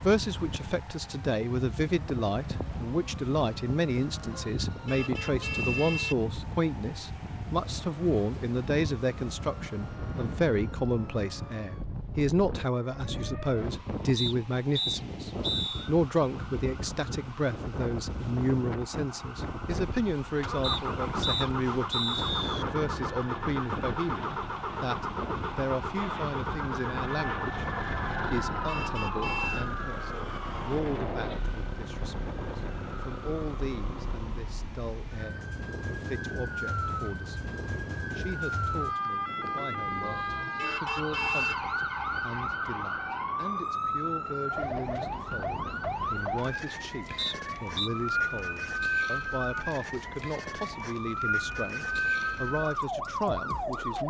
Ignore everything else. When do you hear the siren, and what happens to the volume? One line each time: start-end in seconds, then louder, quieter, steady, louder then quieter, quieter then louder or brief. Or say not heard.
0.0-54.0 louder.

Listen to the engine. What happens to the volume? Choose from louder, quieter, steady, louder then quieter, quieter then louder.
quieter.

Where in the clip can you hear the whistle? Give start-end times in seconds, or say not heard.
14.2-15.9, 20.6-22.6, 47.1-47.9.